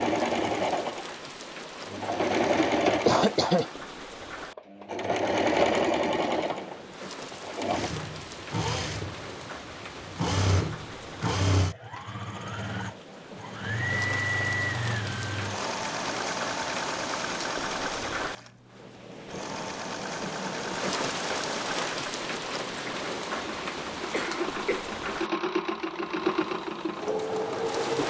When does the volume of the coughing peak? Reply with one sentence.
The loudest moment of the coughing is at 3 seconds.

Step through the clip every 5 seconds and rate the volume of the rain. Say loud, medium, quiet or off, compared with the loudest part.
medium, medium, medium, loud, loud, medium.